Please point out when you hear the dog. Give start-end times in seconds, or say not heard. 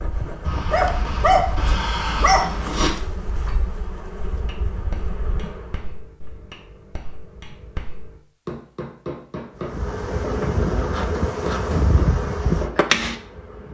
0.5-2.9.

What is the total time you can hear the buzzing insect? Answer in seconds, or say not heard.
10 s.